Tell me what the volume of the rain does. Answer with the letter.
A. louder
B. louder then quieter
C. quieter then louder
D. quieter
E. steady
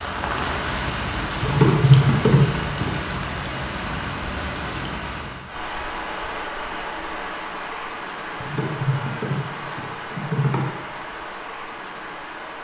D.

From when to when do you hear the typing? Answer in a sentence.
You can hear the typing from 1.4 to 2.9 s and from 8.4 to 10.7 s.